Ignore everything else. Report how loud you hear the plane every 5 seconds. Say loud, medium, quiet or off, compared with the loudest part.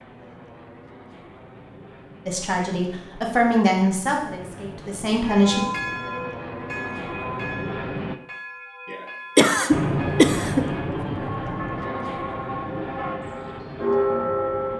quiet, loud, loud.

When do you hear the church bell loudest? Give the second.
14 s.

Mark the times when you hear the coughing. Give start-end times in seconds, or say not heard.
8.9-10.7.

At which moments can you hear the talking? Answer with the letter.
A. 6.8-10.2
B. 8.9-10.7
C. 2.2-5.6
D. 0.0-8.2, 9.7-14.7
C.